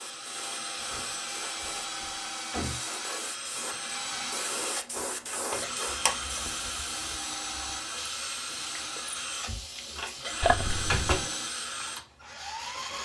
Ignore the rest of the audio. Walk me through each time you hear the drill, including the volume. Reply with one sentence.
You can hear the drill from 0.0 to 13.0 s, at a steady volume.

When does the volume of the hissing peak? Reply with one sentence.
The loudest moment of the hissing is at 6 seconds.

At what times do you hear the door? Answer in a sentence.
You can hear the door from 0.8 to 2.8 s, from 5.0 to 5.8 s and from 9.4 to 11.2 s.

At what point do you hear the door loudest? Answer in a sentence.
The volume of the door peaks at 11 seconds.